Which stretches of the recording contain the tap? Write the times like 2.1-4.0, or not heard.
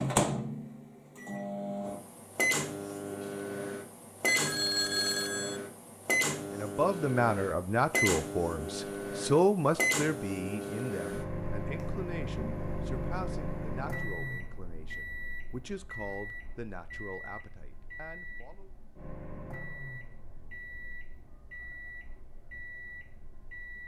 not heard.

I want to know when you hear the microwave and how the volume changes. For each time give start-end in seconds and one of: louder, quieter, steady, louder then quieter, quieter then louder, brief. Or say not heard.
0.0-23.8 quieter.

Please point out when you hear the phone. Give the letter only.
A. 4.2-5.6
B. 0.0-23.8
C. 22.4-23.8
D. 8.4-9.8
A.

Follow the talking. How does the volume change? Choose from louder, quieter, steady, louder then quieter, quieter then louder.
quieter.